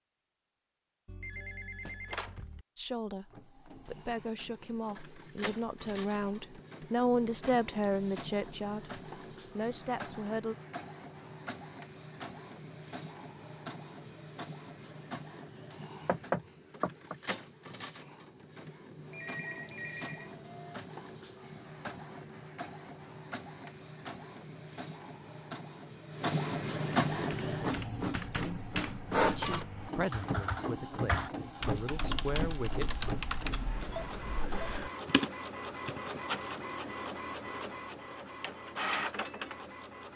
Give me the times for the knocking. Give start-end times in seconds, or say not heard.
16.1-17.1.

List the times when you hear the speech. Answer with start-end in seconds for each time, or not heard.
2.8-10.6, 28.4-32.9.